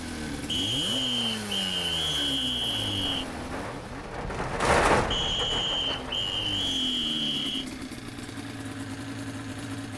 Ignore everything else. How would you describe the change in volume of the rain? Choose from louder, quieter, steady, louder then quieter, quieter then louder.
louder then quieter.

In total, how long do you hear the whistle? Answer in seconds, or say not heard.
5 s.